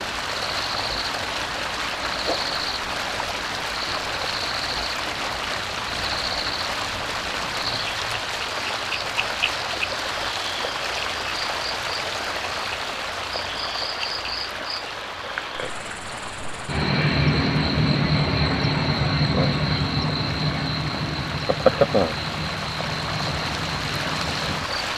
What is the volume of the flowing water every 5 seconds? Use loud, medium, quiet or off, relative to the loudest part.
loud, loud, loud, medium, loud.